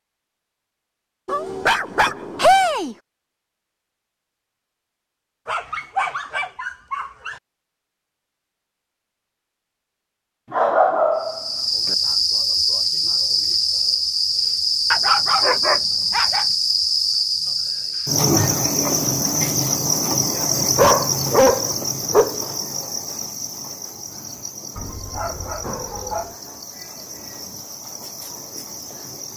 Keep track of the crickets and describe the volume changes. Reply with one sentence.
The loudness of the crickets goes down.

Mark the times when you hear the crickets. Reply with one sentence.
The crickets can be heard from 11.2 to 29.3 s.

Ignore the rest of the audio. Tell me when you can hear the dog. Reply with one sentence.
You can hear the dog from 1.2 to 3.0 s, from 5.5 to 7.4 s, from 10.5 to 11.9 s, from 14.9 to 16.4 s, from 20.8 to 22.4 s and from 24.8 to 26.4 s.